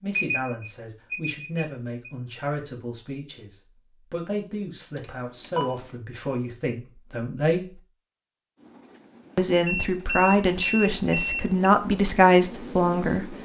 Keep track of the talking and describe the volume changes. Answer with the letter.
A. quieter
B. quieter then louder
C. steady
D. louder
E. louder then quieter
D.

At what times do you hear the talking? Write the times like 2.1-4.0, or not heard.
0.0-7.8, 9.3-13.3.